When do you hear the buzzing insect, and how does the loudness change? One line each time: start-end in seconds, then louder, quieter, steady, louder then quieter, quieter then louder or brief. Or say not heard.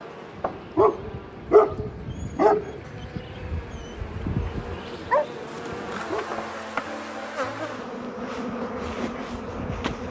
0.0-10.0 louder.